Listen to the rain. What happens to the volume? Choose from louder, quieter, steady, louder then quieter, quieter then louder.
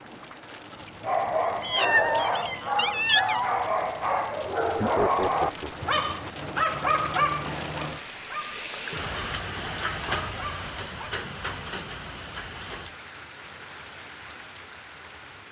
louder then quieter.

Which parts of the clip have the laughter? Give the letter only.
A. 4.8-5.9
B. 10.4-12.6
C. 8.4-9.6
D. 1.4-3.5
A.